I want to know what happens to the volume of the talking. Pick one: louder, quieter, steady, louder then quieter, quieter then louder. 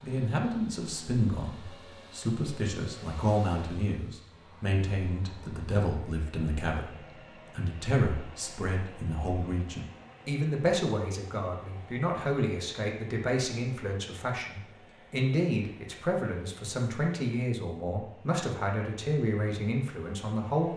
steady.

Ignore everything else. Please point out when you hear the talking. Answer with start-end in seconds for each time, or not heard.
0.0-20.7.